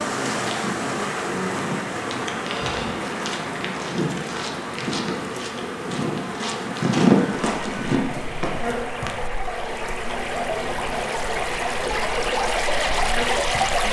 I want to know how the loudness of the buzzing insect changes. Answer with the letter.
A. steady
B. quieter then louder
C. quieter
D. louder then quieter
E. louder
A.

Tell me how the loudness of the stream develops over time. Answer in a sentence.
The loudness of the stream goes down, then up.